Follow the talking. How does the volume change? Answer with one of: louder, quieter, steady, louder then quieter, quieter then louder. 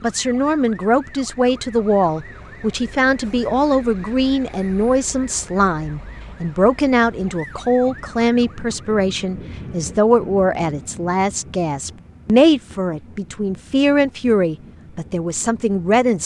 steady.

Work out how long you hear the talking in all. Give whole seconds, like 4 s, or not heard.
16 s.